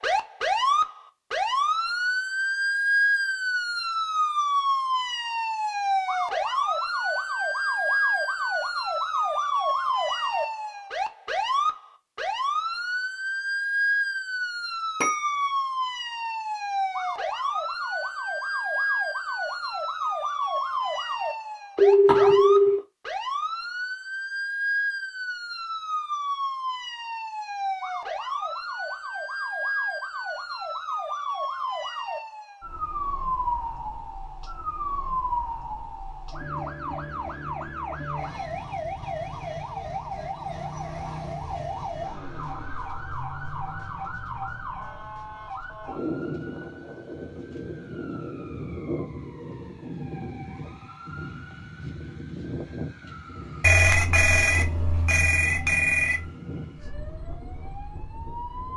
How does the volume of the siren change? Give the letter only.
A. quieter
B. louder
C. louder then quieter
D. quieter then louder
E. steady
A.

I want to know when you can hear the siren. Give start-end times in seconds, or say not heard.
0.0-58.7.